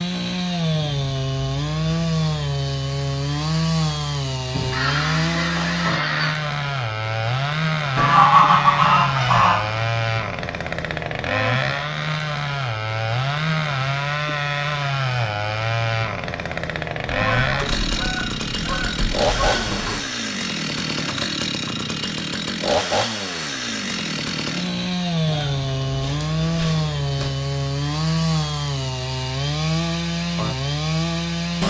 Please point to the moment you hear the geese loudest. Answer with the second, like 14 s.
8 s.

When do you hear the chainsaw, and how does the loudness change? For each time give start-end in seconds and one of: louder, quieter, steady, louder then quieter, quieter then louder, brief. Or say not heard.
0.0-31.6 steady.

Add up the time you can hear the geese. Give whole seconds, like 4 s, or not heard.
9 s.